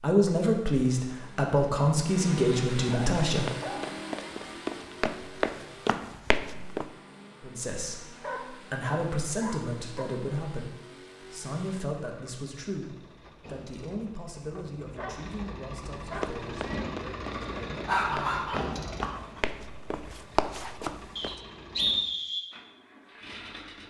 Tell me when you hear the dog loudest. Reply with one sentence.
The loudest moment of the dog is at 18 seconds.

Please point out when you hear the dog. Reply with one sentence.
The dog can be heard from 2.9 to 3.8 s, from 8.2 to 10.1 s, from 14.6 to 16.4 s and from 17.9 to 19.4 s.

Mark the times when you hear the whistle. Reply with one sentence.
You can hear the whistle from 21.1 to 22.4 s.